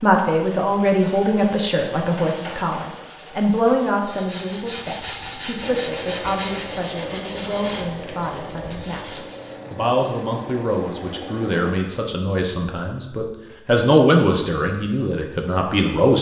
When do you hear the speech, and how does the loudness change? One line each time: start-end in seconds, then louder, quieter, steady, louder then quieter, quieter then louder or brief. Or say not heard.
0.0-16.1 quieter then louder.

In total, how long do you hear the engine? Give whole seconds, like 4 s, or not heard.
6 s.